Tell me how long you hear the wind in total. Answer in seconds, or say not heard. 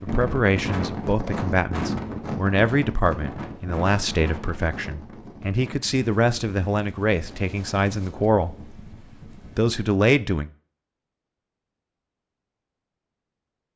10 s.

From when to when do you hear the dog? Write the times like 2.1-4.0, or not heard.
not heard.